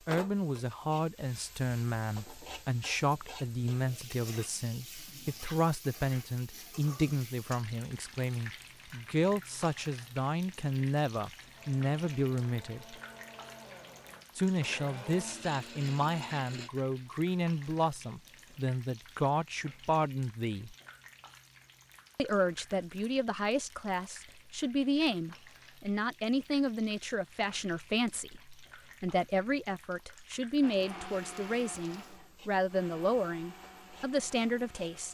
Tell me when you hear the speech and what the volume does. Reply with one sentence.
The speech can be heard from 0.1 to 12.9 s, at a steady volume; from 14.3 to 20.8 s, at a steady volume; and from 22.1 to 35.0 s, at a steady volume.